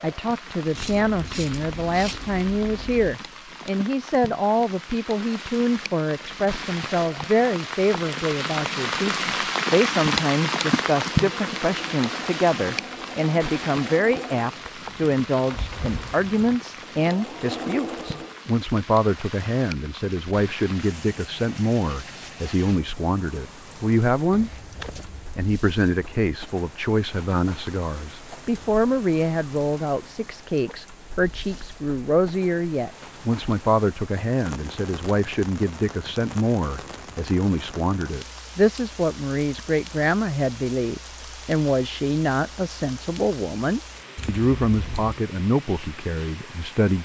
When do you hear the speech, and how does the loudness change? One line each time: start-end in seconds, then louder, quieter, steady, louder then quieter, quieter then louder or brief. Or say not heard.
0.0-24.5 steady
25.4-47.0 steady.